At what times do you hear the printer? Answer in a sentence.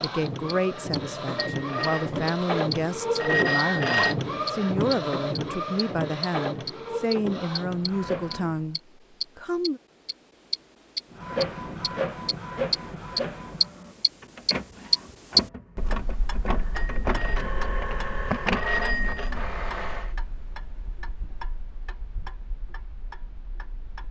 The printer can be heard from 0.0 to 8.7 s and from 11.1 to 20.1 s.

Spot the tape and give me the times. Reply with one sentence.
You can't hear the tape here.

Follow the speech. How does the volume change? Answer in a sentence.
The loudness of the speech stays about the same.